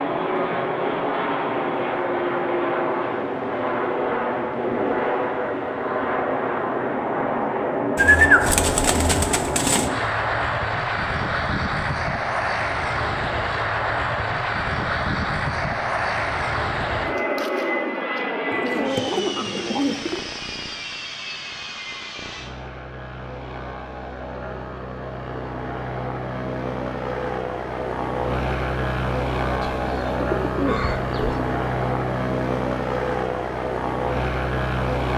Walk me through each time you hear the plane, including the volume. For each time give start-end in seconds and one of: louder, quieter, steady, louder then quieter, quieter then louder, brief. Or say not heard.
0.0-35.1 quieter then louder.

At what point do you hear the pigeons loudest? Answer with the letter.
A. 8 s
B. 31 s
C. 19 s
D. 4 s
A.